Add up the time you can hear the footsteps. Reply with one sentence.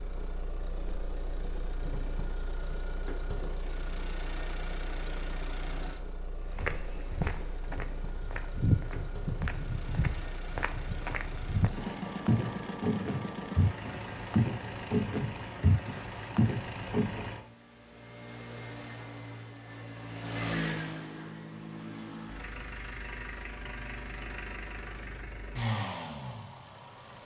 The footsteps can be heard for 11 seconds in total.